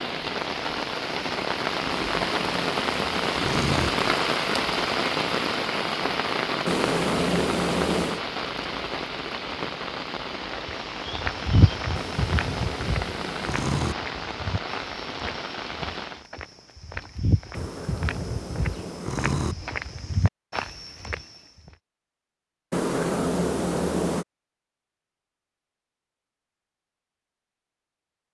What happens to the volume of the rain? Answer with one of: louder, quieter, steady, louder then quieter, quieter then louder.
quieter.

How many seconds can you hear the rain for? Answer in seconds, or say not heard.
16 s.